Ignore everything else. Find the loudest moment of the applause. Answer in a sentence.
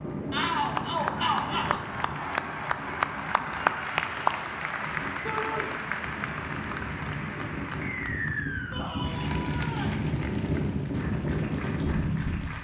The volume of the applause peaks at 4 seconds.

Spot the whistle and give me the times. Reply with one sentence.
The whistle can be heard from 7.8 to 8.9 s.